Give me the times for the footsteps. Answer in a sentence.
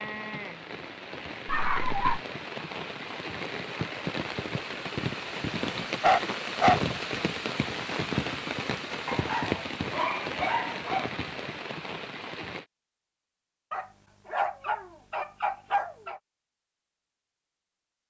The footsteps can't be heard in this clip.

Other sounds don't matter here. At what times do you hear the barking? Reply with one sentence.
The barking can be heard from 1.4 to 2.2 s, from 5.8 to 6.8 s, from 9.1 to 11.2 s and from 13.7 to 16.2 s.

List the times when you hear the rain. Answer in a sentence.
You can hear the rain from 0.0 to 12.7 s.